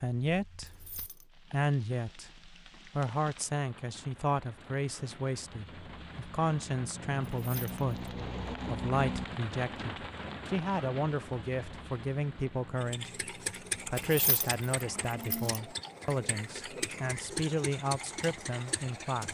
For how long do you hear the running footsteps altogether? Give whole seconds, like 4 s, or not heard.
not heard.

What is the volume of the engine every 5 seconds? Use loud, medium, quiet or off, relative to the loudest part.
off, off, loud, loud.